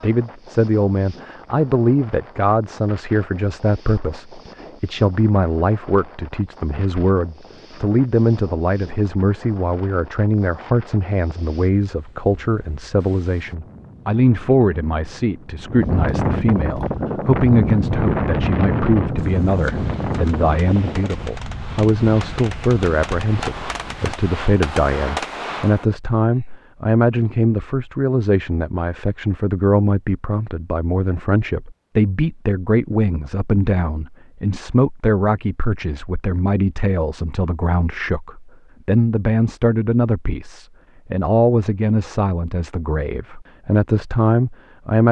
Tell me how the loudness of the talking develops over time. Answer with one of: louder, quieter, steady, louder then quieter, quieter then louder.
steady.